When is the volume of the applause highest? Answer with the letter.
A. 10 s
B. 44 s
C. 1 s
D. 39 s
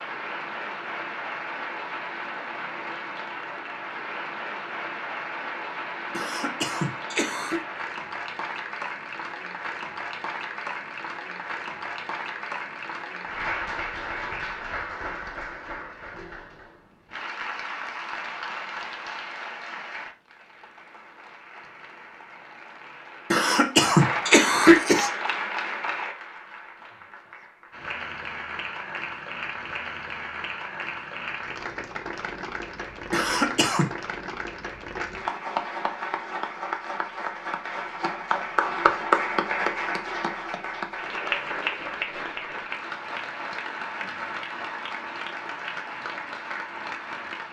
D.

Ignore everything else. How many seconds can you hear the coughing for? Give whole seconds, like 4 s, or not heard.
4 s.